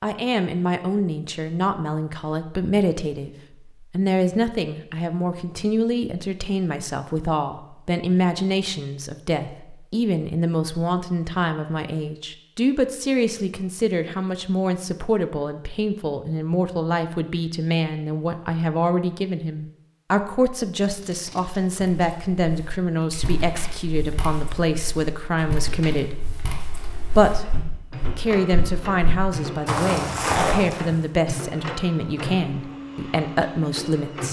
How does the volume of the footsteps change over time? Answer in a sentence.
The volume of the footsteps goes up.